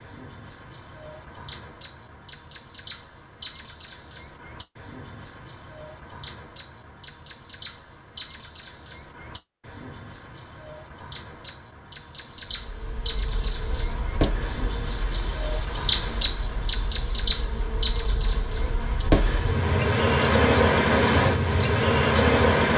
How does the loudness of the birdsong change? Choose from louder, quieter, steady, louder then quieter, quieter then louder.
louder.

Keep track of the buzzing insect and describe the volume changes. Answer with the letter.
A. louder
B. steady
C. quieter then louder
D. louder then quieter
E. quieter
C.